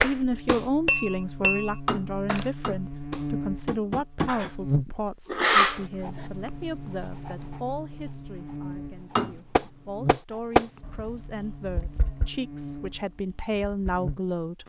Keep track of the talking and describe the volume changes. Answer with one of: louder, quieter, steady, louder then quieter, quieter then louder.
quieter then louder.